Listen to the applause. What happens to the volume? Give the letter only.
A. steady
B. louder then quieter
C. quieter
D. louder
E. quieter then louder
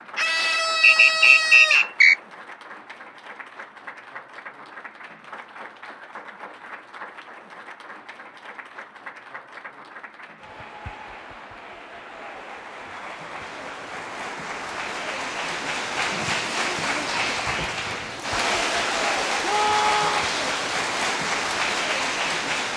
D.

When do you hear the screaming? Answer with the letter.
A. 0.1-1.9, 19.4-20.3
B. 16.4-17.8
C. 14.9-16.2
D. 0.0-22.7
A.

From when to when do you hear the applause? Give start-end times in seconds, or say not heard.
0.0-22.7.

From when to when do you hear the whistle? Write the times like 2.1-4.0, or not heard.
0.8-2.1.